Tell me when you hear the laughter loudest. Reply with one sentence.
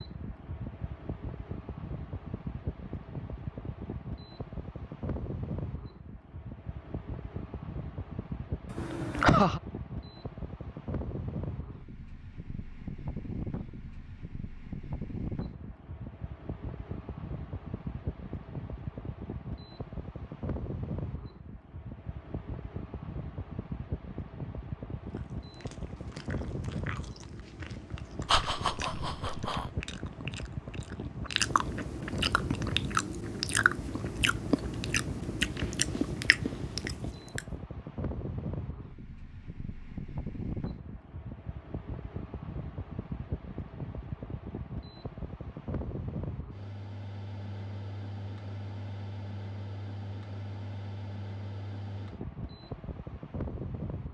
The volume of the laughter peaks at 9 seconds.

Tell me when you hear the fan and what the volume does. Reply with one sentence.
You can hear the fan from 0.0 to 54.0 s, at a steady volume.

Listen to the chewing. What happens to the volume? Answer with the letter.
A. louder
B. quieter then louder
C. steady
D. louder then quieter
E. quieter
A.